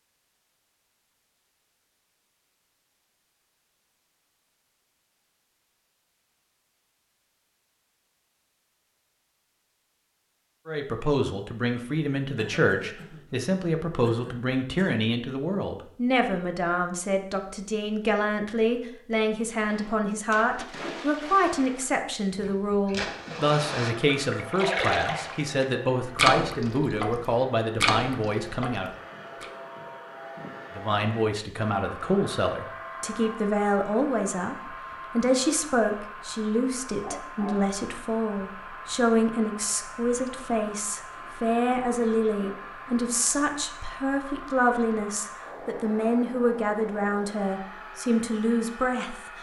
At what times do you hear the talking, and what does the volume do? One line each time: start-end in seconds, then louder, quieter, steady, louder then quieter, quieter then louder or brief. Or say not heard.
10.7-28.9 steady
30.8-49.1 steady.